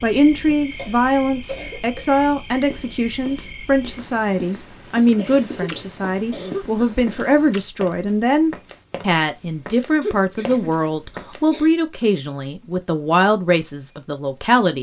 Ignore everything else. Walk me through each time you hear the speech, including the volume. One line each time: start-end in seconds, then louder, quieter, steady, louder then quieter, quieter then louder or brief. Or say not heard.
0.0-14.7 steady.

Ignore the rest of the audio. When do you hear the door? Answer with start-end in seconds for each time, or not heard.
not heard.